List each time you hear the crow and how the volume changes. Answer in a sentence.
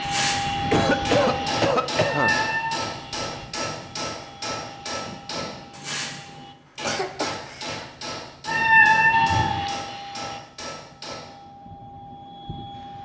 You can't hear the crow here.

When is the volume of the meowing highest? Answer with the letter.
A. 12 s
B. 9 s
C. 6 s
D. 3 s
B.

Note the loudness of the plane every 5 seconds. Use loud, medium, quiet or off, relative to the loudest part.
loud, loud, medium.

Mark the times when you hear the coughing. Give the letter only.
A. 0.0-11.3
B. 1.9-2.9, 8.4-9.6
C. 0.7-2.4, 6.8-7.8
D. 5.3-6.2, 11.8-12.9
C.